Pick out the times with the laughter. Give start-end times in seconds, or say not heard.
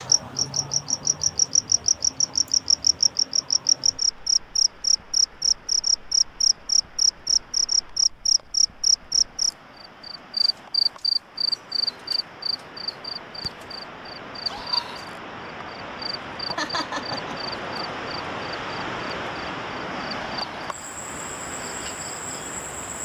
16.6-17.6.